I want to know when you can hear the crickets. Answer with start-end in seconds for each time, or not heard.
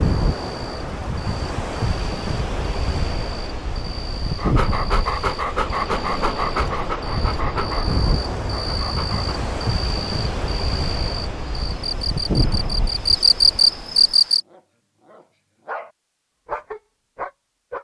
0.0-14.4.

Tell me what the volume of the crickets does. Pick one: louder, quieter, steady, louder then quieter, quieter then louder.
louder.